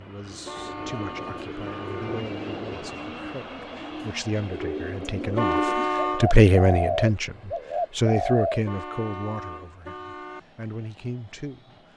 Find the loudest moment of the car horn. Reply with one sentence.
The loudest moment of the car horn is at 6 seconds.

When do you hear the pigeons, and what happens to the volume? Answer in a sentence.
The pigeons can be heard from 0.2 to 8.7 s, getting louder.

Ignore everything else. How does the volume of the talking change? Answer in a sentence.
The volume of the talking goes up, then down.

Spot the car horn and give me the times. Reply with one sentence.
You can hear the car horn from 0.5 to 2.2 s, from 5.3 to 6.2 s and from 8.7 to 10.4 s.